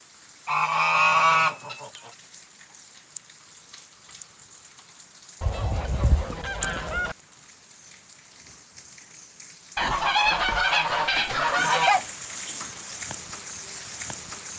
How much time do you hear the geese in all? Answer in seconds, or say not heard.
6 s.